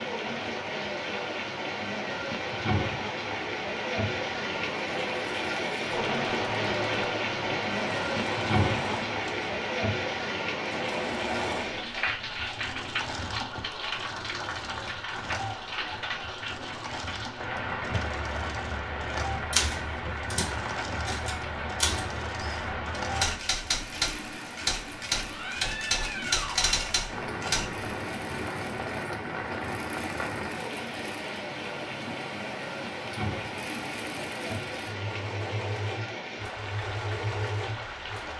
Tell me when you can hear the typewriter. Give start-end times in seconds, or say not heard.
19.5-27.9.